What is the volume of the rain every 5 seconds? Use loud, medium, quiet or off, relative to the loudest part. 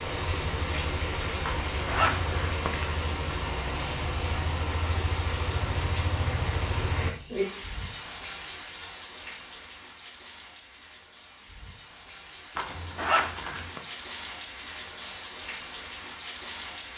loud, loud, medium, medium.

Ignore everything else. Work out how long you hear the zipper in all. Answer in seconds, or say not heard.
3 s.